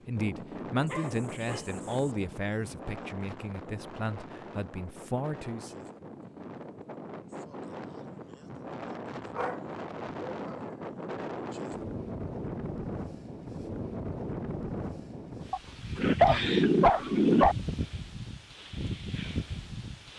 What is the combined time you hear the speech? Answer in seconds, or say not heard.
6 s.